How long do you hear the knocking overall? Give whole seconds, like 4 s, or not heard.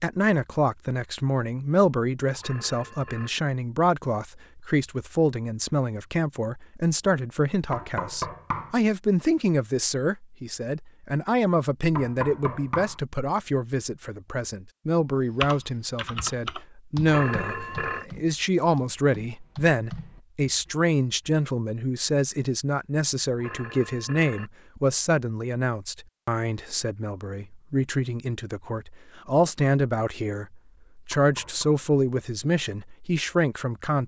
3 s.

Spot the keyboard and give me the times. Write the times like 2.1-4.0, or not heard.
15.4-20.2.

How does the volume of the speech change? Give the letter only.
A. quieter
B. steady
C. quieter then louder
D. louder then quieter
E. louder
B.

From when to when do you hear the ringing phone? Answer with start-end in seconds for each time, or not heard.
2.4-3.3, 17.1-18.1, 23.4-24.5.